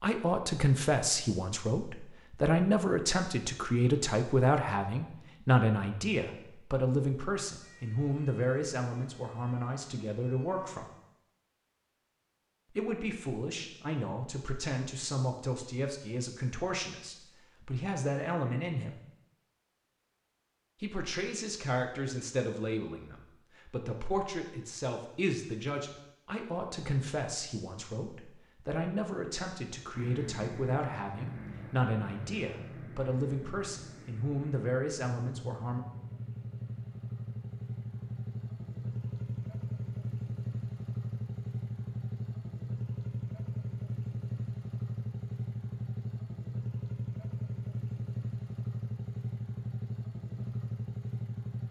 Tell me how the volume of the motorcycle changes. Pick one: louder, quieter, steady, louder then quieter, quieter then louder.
louder.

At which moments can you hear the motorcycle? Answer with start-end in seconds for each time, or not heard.
29.9-51.6.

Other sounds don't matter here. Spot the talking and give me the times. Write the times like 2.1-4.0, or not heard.
0.0-10.8, 12.7-19.0, 20.8-35.8.